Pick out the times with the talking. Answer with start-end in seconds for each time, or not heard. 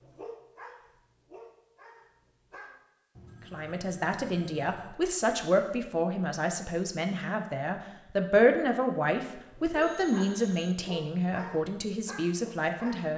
3.5-13.1.